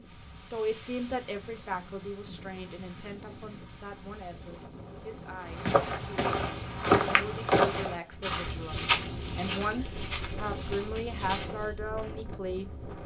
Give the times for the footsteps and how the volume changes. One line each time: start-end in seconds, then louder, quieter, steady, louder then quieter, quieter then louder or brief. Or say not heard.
5.5-11.7 quieter.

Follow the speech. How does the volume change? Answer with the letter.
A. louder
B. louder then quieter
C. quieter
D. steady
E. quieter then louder
E.